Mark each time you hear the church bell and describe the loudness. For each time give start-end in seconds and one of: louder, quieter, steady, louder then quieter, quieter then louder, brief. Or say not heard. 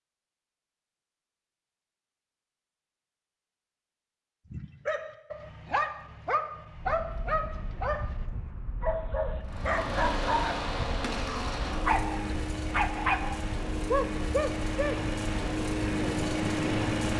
not heard.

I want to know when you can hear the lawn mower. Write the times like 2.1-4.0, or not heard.
9.4-17.1.